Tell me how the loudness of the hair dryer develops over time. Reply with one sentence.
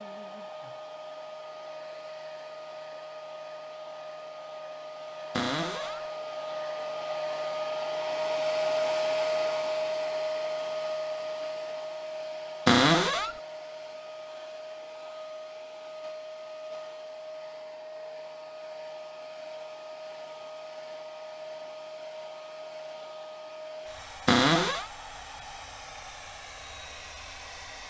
The volume of the hair dryer goes up, then down.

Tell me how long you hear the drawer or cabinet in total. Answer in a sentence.
You can hear the drawer or cabinet for 2 seconds altogether.